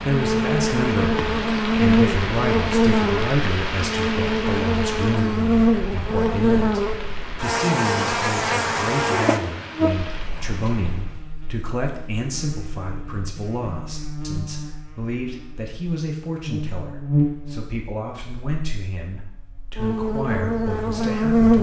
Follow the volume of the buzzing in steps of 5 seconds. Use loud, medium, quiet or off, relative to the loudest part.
loud, loud, quiet, medium, loud.